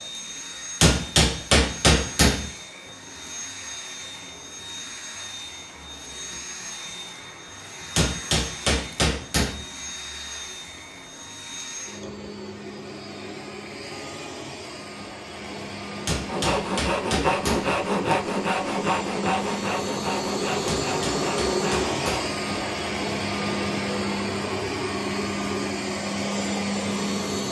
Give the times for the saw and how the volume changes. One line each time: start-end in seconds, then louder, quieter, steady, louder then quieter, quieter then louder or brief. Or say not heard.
16.2-22.4 quieter.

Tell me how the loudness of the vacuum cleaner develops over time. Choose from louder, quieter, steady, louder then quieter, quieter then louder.
louder.